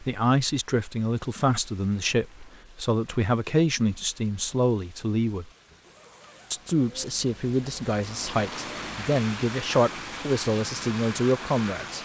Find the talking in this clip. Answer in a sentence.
The talking can be heard from 0.0 to 5.5 s and from 6.5 to 11.9 s.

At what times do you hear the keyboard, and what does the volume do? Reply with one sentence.
You can't hear the keyboard here.